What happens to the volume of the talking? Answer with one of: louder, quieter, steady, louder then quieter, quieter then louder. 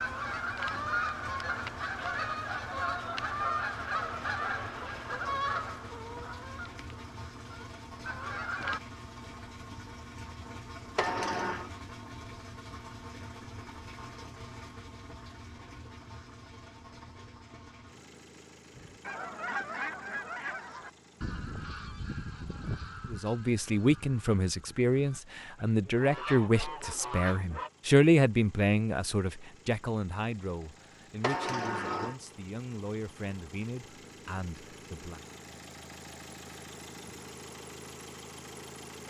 quieter.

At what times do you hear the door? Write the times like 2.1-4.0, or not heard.
10.9-11.7, 31.2-32.1.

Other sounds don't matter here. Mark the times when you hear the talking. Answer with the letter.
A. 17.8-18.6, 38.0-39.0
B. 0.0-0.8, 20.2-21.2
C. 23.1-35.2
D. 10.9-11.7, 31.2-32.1
C.